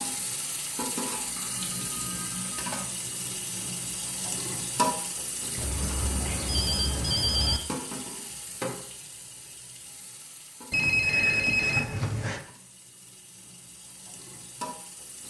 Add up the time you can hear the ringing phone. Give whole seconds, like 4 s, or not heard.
5 s.